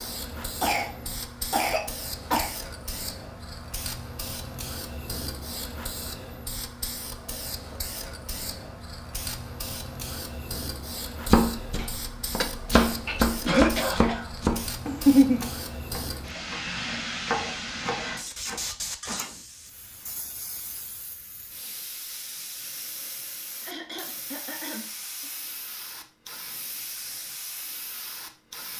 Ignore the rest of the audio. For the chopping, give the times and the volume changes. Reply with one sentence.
The chopping can be heard from 11.2 to 19.2 s, getting louder then quieter.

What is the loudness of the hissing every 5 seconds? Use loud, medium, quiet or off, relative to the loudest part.
loud, loud, loud, loud, medium, medium.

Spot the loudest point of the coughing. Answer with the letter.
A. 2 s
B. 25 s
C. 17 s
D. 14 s
D.